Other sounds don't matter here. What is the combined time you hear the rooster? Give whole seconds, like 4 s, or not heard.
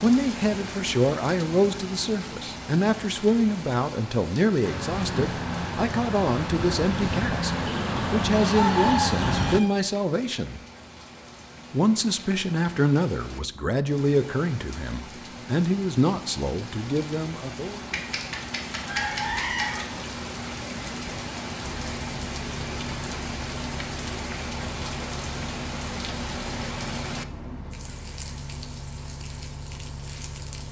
4 s.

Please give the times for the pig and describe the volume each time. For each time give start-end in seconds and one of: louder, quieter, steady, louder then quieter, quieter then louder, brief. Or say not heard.
not heard.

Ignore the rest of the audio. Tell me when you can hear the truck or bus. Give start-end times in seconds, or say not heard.
4.6-9.6, 21.6-30.6.